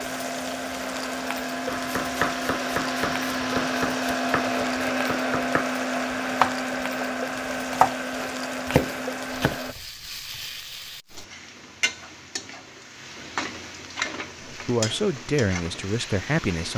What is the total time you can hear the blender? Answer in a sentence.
You can hear the blender for 10 seconds altogether.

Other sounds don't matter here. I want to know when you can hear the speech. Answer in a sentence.
The speech can be heard from 14.4 to 16.7 s.